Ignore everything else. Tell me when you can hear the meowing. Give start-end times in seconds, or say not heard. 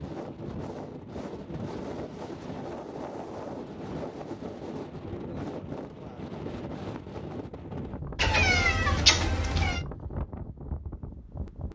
8.2-9.8.